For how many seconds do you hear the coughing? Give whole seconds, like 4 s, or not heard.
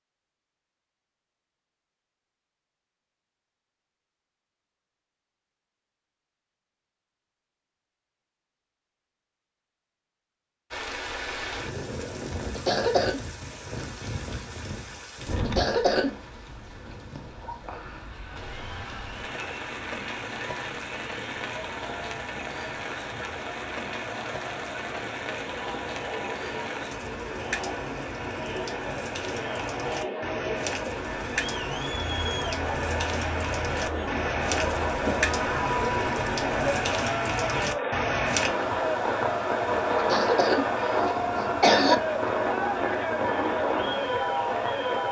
3 s.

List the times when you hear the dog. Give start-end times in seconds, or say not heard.
not heard.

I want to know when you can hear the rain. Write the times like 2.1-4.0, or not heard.
10.7-45.0.